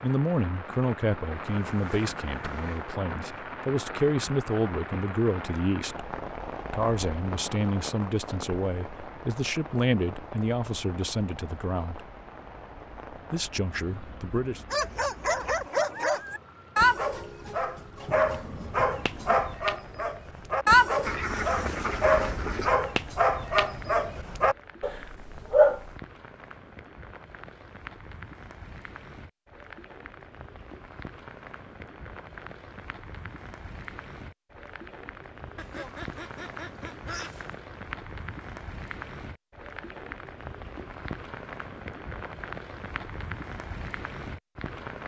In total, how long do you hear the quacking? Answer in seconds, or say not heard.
5 s.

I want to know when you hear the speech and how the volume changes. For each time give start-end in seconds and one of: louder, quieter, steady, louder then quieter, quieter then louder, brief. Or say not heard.
0.0-12.1 steady
13.3-14.6 brief.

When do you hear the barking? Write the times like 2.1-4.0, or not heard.
14.7-25.9.